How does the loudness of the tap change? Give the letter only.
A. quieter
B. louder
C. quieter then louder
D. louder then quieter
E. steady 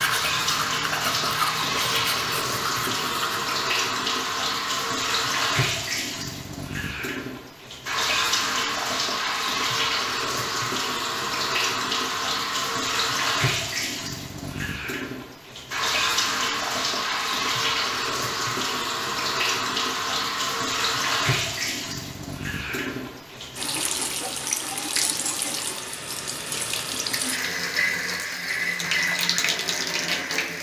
E.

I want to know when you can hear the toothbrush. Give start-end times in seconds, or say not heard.
0.0-3.5.